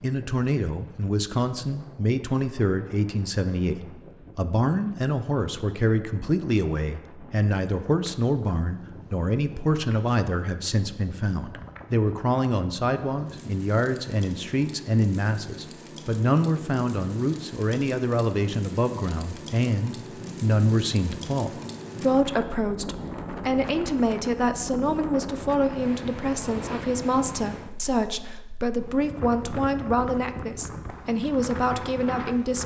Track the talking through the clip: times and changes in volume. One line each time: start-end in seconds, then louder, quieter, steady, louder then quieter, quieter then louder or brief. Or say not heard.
0.0-32.6 steady.